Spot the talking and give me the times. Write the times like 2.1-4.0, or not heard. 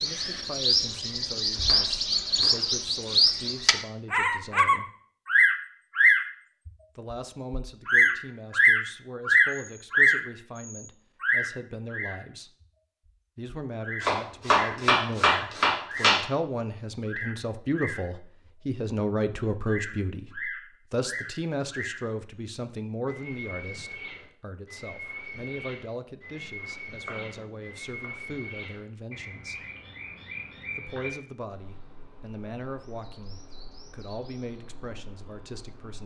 0.0-4.9, 7.0-12.5, 13.3-29.6, 30.8-36.0.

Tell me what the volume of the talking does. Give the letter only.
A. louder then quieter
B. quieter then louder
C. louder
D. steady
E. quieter
A.